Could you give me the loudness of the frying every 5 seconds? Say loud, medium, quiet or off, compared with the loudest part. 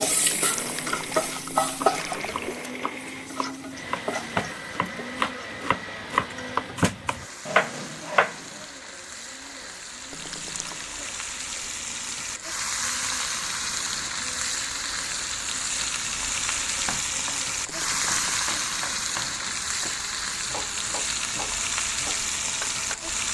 loud, quiet, loud, loud, loud.